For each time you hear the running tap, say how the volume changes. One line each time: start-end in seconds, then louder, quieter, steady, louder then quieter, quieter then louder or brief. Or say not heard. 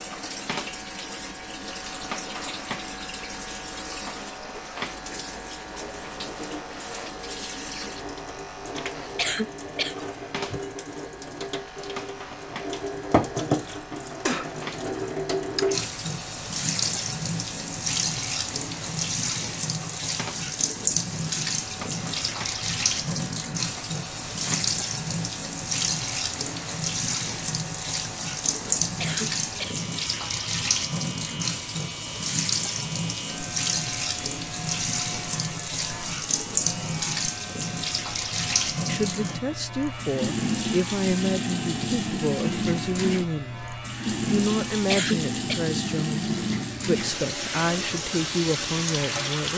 0.0-49.5 louder.